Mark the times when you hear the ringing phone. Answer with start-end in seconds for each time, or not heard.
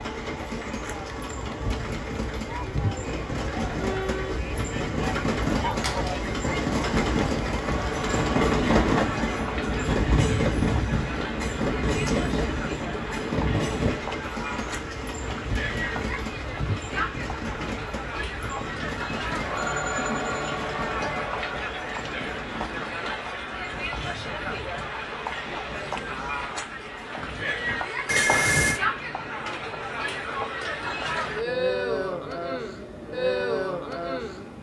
5.8-6.2, 19.4-20.5, 28.1-28.8.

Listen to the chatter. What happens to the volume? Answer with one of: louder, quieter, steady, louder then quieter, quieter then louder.
louder.